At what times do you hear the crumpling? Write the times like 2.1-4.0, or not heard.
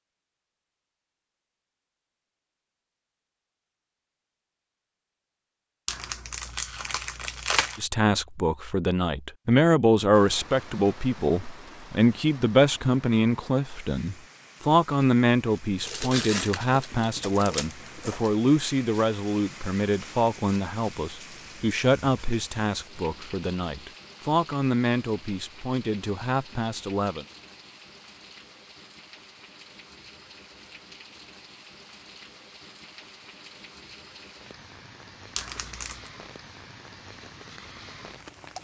5.8-7.8, 15.8-18.3, 35.4-36.1.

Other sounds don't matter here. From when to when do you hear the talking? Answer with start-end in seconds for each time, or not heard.
7.8-27.2.